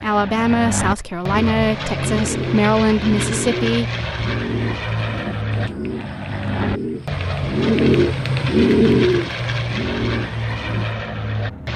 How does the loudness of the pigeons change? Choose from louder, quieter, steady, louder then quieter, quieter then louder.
louder.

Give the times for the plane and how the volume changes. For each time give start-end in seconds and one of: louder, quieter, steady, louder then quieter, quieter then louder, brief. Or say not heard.
0.0-11.7 steady.